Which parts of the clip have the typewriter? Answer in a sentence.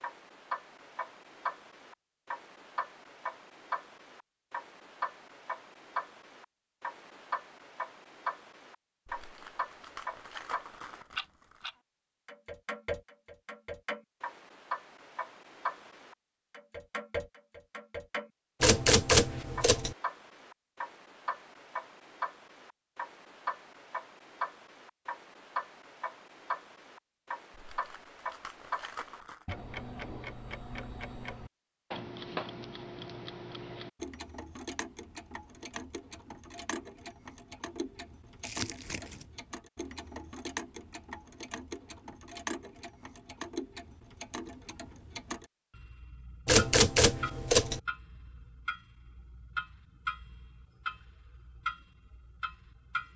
You can hear the typewriter from 18.6 to 19.9 s and from 46.5 to 47.8 s.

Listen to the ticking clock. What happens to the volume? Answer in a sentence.
The volume of the ticking clock stays about the same.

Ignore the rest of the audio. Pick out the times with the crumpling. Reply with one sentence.
You can hear the crumpling from 9.1 to 11.7 s, from 27.5 to 29.4 s and from 38.4 to 39.2 s.